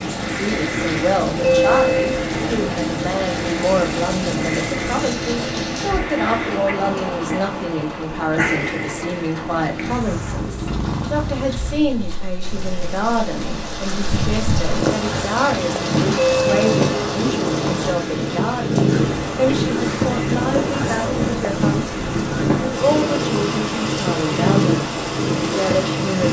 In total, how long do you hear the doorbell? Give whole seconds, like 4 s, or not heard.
2 s.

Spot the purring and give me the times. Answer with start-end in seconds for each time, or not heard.
0.0-26.2.